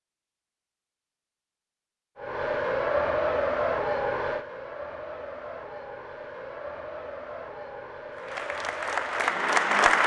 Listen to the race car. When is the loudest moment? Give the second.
3 s.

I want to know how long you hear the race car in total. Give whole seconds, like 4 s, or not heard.
8 s.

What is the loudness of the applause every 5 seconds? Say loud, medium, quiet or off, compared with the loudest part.
off, loud.